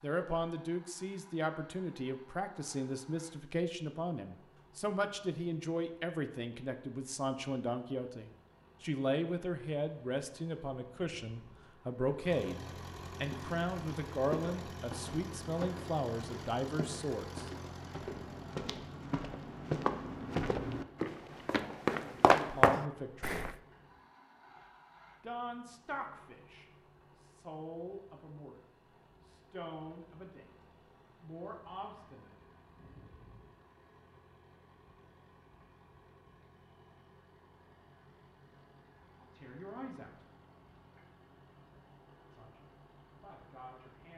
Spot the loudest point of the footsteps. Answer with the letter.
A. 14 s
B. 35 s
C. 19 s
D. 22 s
D.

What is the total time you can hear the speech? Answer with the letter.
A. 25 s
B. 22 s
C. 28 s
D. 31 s
C.